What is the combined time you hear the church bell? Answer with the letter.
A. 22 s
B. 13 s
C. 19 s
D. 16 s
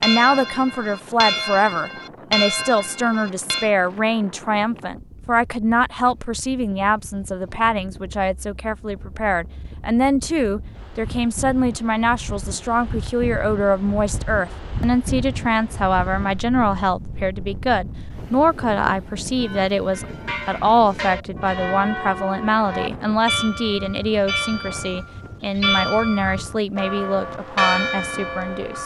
B.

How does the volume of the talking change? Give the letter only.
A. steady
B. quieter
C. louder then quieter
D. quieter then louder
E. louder
A.